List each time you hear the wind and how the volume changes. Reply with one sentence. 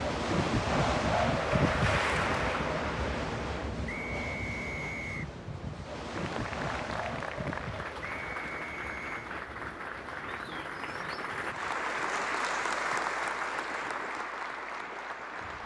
The wind can be heard from 0.0 to 15.6 s, getting quieter.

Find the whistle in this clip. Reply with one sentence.
You can hear the whistle from 3.9 to 5.3 s and from 8.0 to 9.3 s.